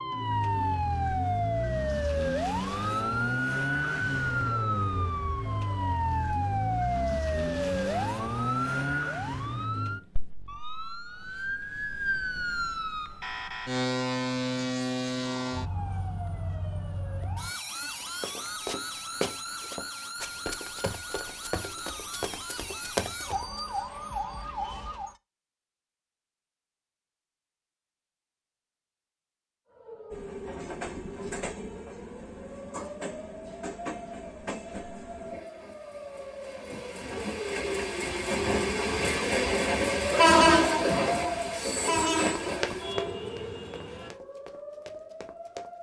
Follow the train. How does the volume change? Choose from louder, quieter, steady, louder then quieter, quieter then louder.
louder then quieter.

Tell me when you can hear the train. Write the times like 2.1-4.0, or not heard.
30.1-44.1.